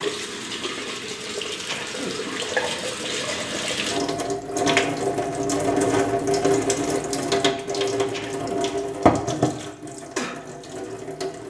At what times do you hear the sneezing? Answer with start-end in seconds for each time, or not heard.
1.6-2.1, 8.1-8.7.